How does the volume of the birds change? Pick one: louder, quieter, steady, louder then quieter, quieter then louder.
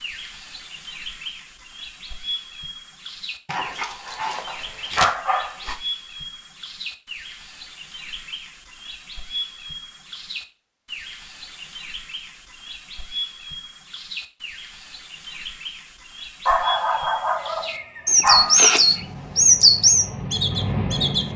louder.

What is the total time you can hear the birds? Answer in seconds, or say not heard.
21 s.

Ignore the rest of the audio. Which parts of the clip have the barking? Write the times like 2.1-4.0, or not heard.
3.5-5.8, 16.4-19.1.